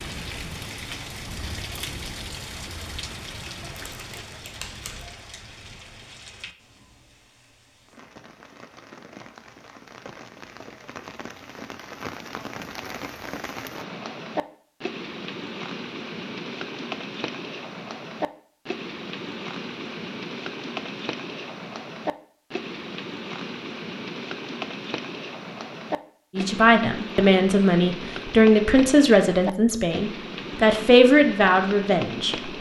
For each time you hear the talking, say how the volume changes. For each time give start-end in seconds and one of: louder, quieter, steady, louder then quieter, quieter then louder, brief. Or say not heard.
26.4-32.5 steady.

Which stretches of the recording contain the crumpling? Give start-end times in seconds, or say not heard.
3.8-5.2.